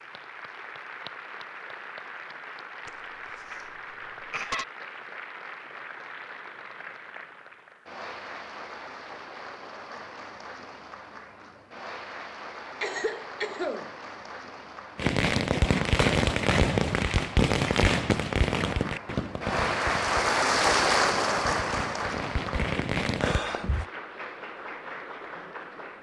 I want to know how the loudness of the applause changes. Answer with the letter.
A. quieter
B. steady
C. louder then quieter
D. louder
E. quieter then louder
D.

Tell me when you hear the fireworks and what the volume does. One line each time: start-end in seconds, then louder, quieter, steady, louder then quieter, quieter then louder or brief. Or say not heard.
14.9-23.4 quieter then louder.